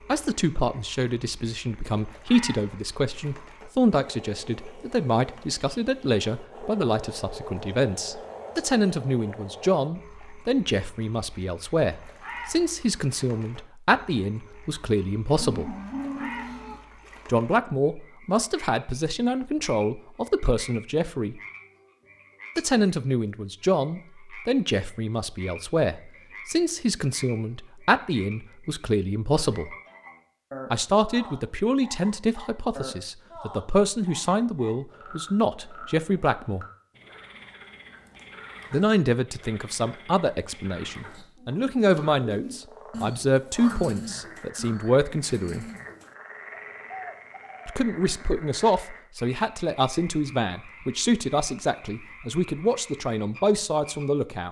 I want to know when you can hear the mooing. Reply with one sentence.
You can hear the mooing from 15.3 to 16.8 s.